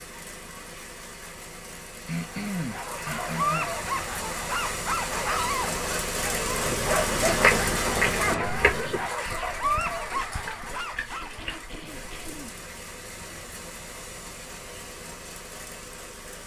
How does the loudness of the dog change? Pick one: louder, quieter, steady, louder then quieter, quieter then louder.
steady.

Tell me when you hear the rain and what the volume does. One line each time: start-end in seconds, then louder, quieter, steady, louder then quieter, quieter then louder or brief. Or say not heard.
0.0-16.4 louder then quieter.